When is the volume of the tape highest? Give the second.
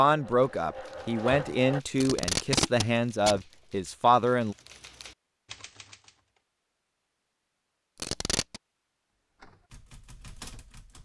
2 s.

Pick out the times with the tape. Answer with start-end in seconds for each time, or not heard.
1.9-3.5, 8.0-8.6.